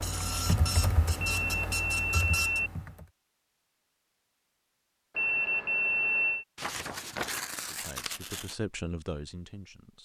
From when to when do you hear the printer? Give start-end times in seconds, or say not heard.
0.0-2.6.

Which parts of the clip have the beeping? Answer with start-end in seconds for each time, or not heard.
1.2-2.7, 5.2-6.5.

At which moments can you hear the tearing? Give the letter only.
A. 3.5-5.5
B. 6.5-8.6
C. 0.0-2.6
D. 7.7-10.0
B.